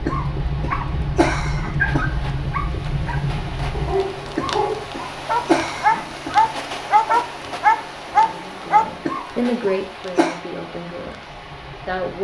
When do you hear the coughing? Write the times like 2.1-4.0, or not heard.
0.1-2.1, 4.3-6.4, 9.1-10.4.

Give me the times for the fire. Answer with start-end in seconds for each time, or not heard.
0.0-12.1.